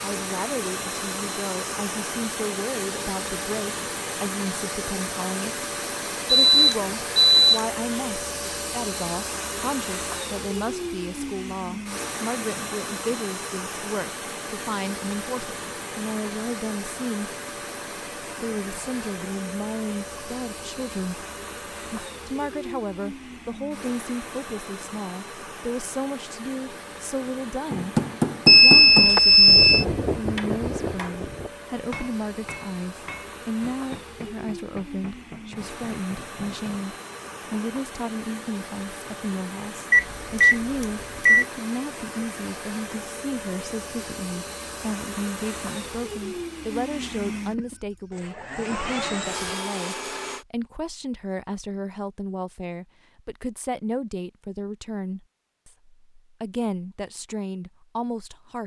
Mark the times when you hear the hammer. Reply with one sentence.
The hammer can be heard from 27.7 to 37.8 s.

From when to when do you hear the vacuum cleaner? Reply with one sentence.
The vacuum cleaner can be heard from 0.0 to 50.5 s.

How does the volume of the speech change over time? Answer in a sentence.
The loudness of the speech stays about the same.